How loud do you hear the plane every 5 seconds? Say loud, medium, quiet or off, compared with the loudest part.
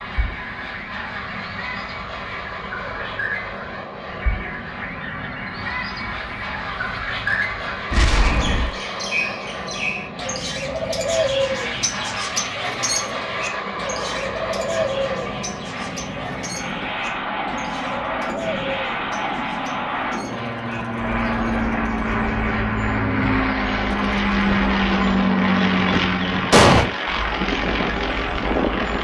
quiet, medium, medium, medium, loud, loud.